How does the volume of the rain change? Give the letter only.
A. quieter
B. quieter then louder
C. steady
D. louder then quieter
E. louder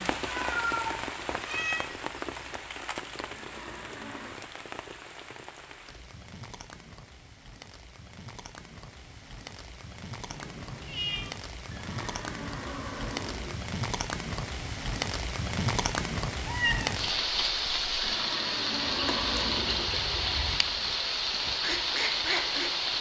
B.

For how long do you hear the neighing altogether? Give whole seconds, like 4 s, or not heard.
5 s.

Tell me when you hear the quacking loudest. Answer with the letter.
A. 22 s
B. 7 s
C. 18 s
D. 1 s
A.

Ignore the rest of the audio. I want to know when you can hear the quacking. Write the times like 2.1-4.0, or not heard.
18.9-22.7.